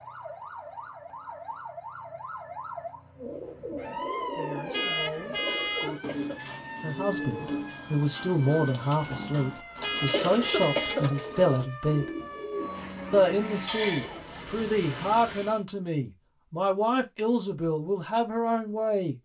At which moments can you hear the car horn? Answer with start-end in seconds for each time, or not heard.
4.7-6.0, 9.8-11.1.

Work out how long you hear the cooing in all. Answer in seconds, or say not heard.
11 s.